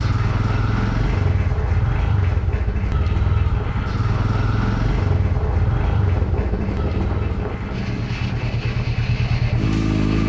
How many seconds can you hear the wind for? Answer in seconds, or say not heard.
10 s.